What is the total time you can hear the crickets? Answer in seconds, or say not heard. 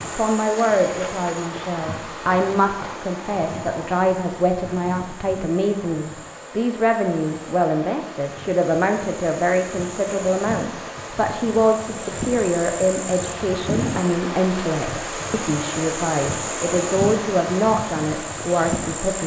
19 s.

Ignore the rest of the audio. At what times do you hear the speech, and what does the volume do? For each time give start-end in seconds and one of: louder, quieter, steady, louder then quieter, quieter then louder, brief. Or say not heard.
0.0-19.2 steady.